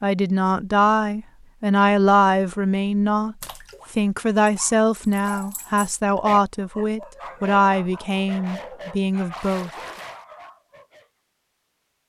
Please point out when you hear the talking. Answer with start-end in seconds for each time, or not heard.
0.0-9.7.